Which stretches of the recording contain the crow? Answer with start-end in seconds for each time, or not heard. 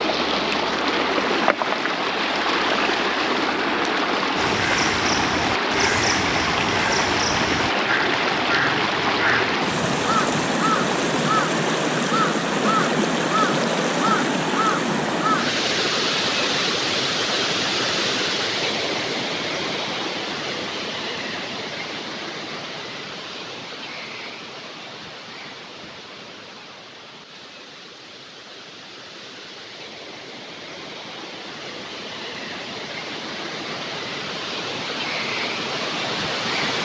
4.3-15.5.